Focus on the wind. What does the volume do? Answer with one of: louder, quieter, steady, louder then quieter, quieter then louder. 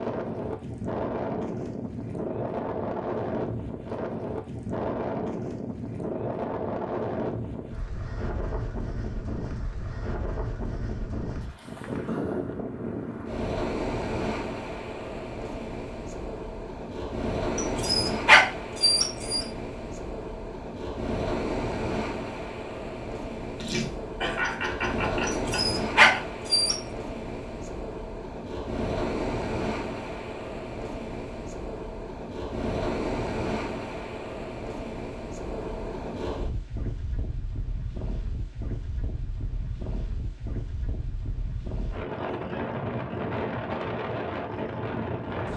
steady.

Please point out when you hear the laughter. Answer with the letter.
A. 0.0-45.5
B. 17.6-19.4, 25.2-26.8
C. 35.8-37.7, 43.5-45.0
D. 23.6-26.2
D.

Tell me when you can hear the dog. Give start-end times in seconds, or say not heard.
17.6-19.4, 25.2-26.8.